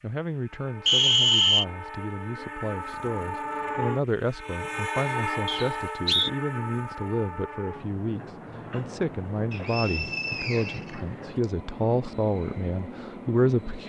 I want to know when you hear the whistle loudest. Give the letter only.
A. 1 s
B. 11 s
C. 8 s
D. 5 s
A.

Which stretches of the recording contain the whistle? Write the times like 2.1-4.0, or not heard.
0.8-1.6, 5.5-6.3, 9.5-11.4.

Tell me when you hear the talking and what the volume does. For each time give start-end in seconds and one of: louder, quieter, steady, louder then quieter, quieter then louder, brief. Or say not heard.
0.0-13.8 louder.